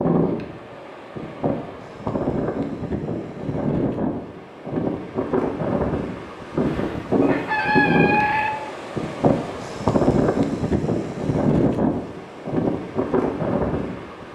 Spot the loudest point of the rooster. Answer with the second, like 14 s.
8 s.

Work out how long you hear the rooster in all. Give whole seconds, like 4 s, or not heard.
2 s.